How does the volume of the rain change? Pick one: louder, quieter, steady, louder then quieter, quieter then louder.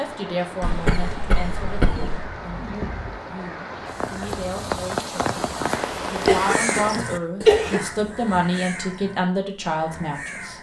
louder.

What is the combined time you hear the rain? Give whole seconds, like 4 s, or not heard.
7 s.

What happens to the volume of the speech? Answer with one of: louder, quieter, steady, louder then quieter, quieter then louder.
quieter then louder.